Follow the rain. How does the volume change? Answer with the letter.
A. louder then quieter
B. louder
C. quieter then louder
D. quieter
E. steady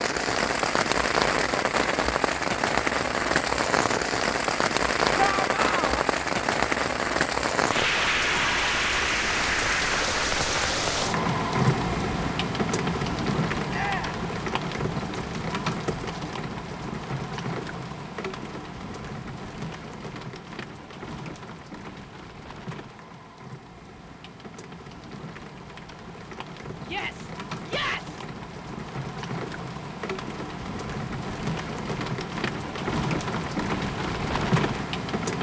C.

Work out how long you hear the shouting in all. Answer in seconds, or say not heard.
3 s.